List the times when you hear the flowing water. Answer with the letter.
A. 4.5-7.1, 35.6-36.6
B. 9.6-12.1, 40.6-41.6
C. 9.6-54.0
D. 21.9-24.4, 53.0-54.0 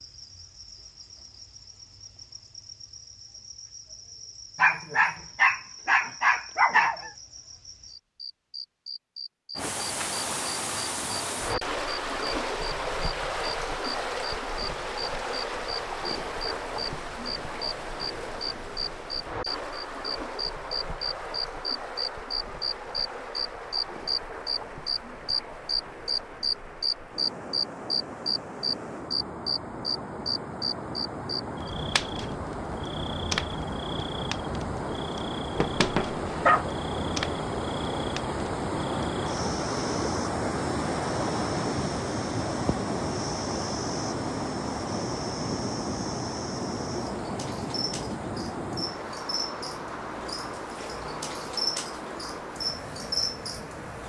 C.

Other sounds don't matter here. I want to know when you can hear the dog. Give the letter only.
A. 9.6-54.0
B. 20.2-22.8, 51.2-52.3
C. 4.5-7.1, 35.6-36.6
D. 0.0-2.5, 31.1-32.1
C.